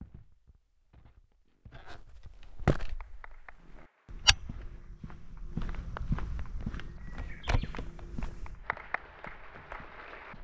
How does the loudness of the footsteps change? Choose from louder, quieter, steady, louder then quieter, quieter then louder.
louder then quieter.